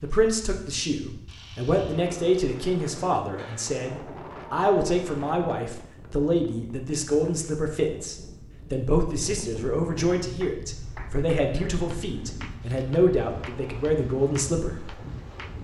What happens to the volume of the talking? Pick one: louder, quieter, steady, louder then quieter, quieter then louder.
steady.